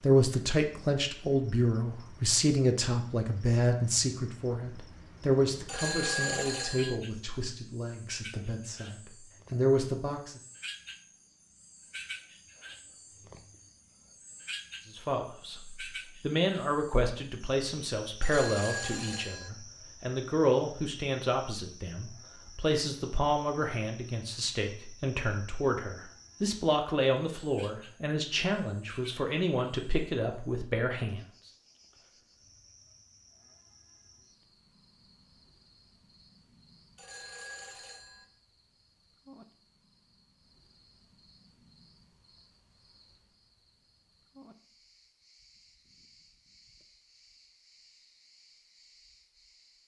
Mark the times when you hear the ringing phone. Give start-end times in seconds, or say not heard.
5.7-7.0, 18.2-19.5, 37.0-38.2.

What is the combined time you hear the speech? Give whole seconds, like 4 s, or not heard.
27 s.